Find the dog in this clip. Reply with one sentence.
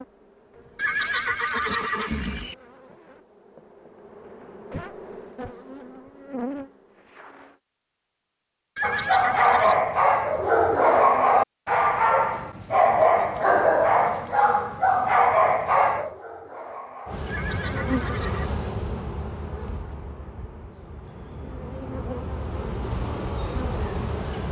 You can hear the dog from 8.8 to 17.2 s.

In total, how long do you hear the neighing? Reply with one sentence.
The neighing can be heard for 4 seconds in total.